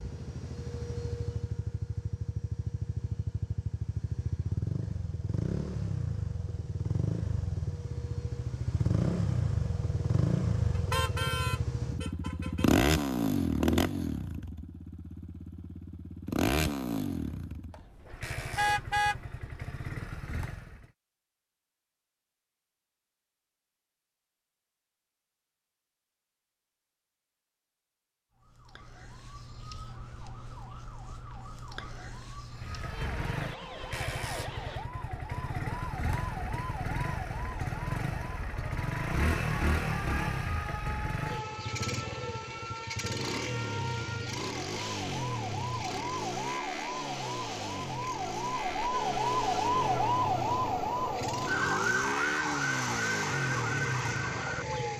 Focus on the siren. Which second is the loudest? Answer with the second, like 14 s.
50 s.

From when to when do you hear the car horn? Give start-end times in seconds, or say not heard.
10.8-12.7, 18.6-19.2, 48.9-50.1.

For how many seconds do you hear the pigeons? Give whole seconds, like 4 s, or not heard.
not heard.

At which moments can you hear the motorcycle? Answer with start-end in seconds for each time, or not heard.
0.0-20.9, 32.5-54.9.